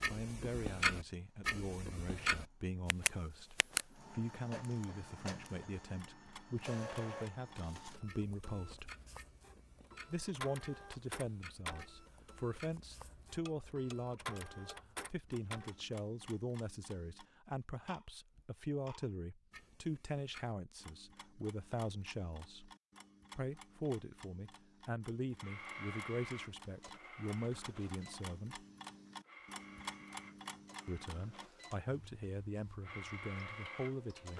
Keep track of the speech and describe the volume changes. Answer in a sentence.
The loudness of the speech stays about the same.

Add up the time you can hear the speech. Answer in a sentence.
You can hear the speech for 30 seconds altogether.